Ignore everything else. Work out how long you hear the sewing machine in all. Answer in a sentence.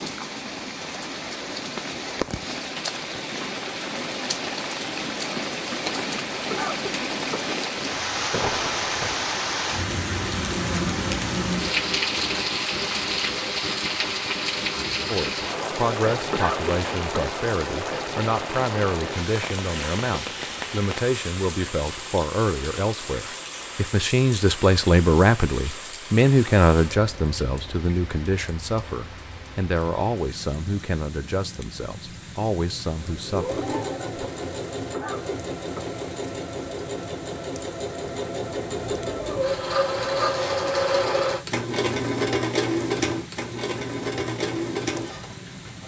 The sewing machine can be heard for 13 seconds in total.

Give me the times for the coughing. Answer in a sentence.
You can hear the coughing from 6.5 to 7.5 s, from 16.3 to 17.4 s and from 34.9 to 36.0 s.